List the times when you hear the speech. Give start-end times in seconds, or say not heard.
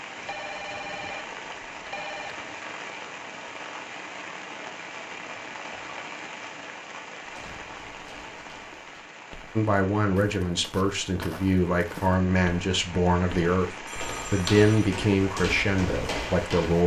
9.6-16.8.